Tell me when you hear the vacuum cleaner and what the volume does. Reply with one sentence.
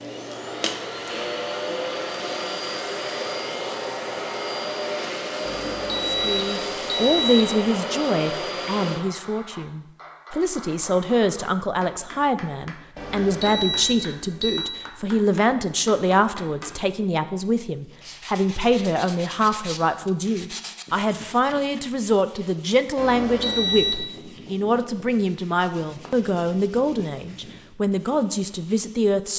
The vacuum cleaner can be heard from 0.0 to 9.1 s, at a steady volume.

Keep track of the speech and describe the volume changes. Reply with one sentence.
The volume of the speech stays about the same.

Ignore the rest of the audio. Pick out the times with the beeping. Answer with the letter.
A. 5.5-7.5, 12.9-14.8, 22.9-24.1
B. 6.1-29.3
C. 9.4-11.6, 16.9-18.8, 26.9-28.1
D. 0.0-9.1
A.